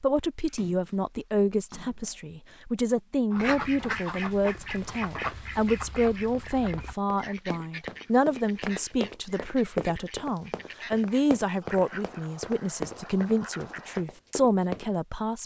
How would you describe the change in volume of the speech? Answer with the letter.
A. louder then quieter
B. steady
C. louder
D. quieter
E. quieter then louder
B.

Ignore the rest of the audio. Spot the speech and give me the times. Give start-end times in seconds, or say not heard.
0.0-15.4.